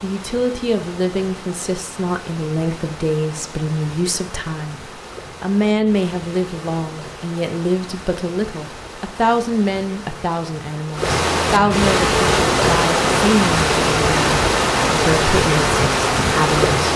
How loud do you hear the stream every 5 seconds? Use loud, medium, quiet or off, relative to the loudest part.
quiet, quiet, loud, loud.